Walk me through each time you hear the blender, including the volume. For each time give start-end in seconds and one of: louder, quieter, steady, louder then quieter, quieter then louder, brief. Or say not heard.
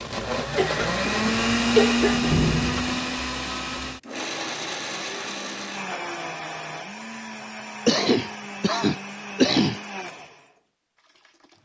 0.0-11.6 quieter.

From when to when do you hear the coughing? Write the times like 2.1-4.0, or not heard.
0.6-2.3, 7.8-9.8.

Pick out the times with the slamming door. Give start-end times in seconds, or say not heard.
2.0-3.1.